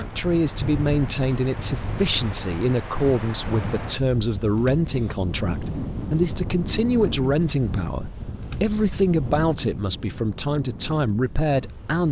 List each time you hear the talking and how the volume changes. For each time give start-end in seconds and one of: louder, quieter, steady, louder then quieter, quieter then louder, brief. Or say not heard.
0.0-12.0 steady.